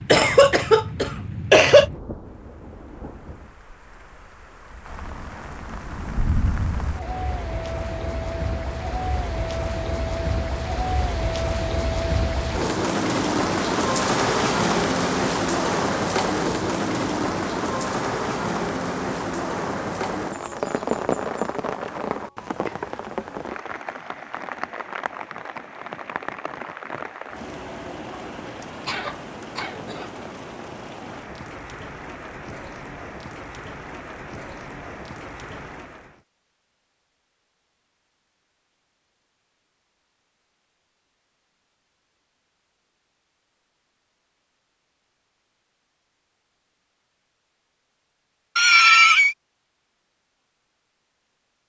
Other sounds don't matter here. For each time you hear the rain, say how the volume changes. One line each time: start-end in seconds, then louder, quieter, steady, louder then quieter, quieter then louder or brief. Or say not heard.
0.0-36.2 louder then quieter.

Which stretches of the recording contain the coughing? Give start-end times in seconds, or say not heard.
0.1-1.9, 28.9-30.1, 48.5-49.4.